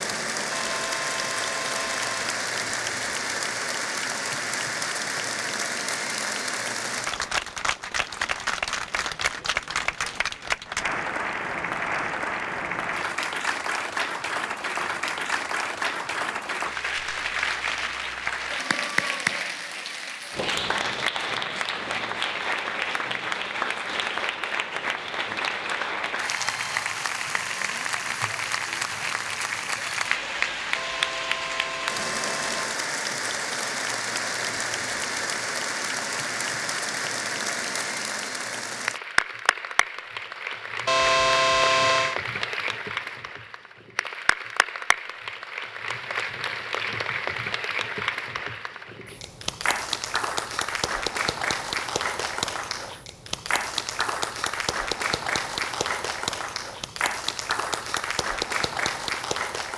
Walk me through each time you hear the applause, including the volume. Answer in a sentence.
You can hear the applause from 0.0 to 59.7 s, at a steady volume.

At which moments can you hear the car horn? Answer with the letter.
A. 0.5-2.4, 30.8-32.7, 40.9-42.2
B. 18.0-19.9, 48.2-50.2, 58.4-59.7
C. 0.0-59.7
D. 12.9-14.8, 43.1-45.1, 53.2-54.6
A.